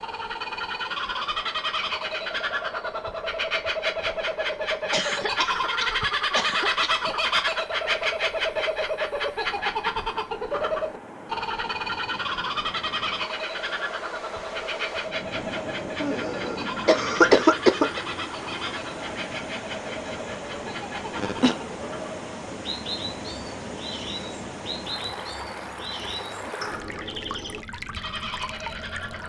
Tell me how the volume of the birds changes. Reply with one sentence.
The loudness of the birds goes down.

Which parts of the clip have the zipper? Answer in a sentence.
You can't hear the zipper here.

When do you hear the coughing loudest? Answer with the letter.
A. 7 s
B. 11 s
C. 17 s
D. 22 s
C.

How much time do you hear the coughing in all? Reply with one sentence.
You can hear the coughing for 5 seconds altogether.